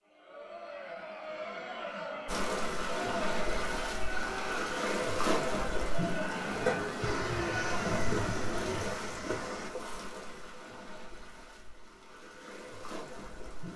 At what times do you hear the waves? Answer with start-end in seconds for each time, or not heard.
2.2-13.7.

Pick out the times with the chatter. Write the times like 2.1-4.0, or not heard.
0.1-8.9.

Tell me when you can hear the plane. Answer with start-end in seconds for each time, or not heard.
7.0-9.7.